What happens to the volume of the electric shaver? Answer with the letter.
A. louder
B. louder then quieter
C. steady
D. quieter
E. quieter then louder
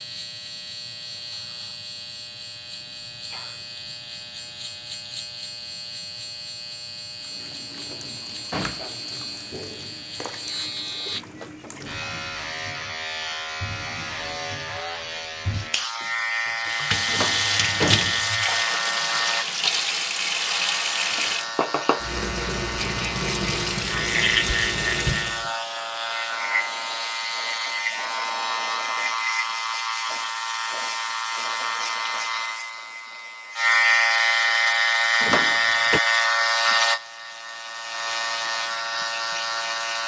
A.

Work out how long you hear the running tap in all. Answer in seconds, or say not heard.
18 s.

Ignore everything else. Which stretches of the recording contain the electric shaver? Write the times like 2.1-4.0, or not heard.
0.0-40.0.